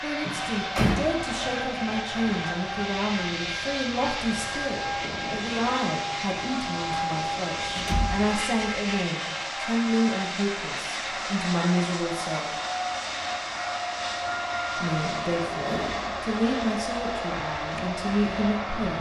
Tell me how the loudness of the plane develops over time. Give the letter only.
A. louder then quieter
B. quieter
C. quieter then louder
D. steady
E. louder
D.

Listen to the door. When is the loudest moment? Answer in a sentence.
The volume of the door peaks at 1 second.